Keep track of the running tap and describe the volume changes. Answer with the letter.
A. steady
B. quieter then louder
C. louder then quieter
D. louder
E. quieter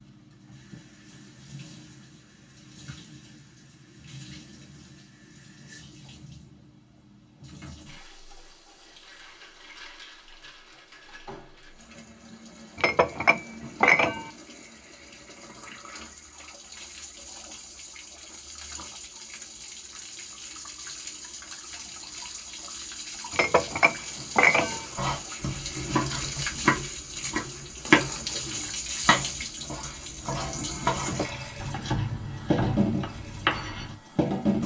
D.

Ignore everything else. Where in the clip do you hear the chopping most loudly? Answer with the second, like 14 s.
28 s.